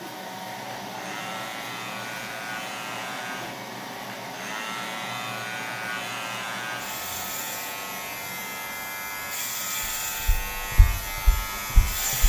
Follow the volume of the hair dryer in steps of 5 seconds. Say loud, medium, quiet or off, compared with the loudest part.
loud, loud, medium.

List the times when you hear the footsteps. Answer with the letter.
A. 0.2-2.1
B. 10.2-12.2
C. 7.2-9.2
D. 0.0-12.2
B.